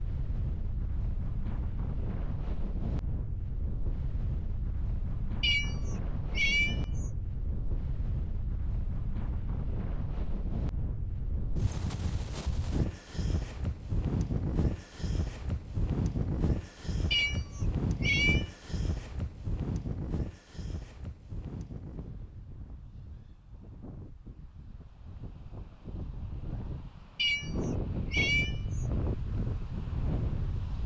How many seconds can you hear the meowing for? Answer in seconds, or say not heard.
5 s.